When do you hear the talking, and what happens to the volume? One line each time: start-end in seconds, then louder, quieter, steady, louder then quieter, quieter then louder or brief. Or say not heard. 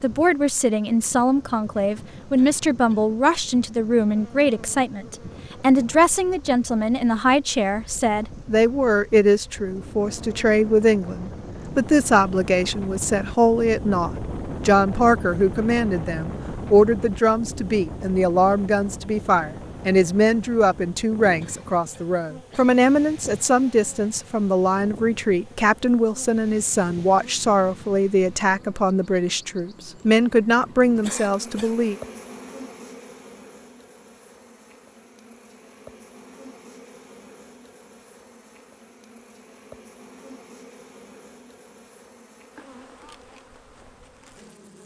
0.0-31.9 steady.